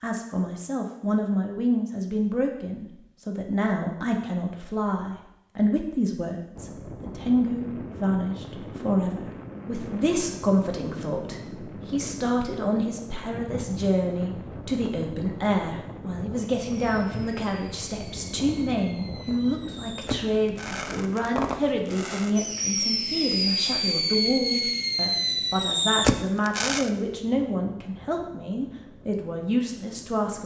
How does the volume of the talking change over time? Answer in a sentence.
The loudness of the talking stays about the same.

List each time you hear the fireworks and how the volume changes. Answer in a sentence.
You can hear the fireworks from 16.6 to 26.9 s, getting louder.